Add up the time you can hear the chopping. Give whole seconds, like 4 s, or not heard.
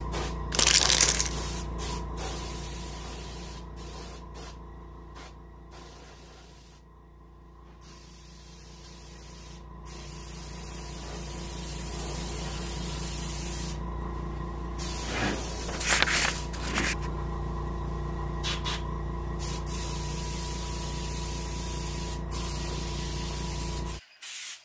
not heard.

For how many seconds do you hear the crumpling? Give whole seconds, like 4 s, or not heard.
2 s.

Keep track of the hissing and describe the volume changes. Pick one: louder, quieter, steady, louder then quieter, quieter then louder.
quieter then louder.